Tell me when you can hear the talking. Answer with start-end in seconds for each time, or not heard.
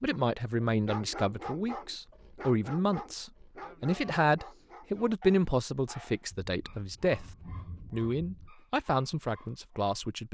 0.0-7.2, 7.9-10.2.